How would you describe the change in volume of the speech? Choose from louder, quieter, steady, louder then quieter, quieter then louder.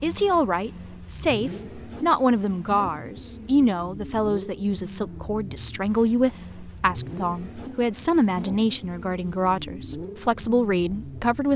steady.